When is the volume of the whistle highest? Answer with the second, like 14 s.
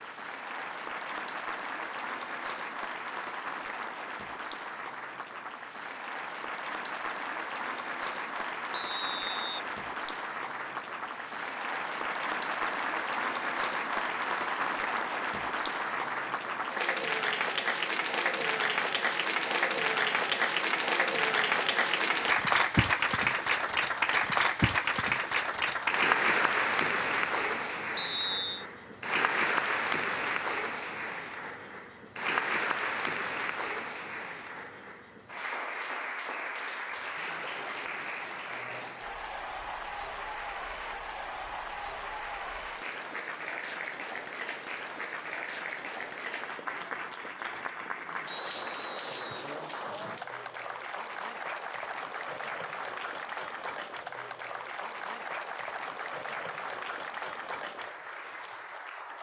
28 s.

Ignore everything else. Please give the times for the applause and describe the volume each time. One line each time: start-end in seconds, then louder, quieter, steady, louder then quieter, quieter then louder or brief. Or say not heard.
0.0-59.1 louder then quieter.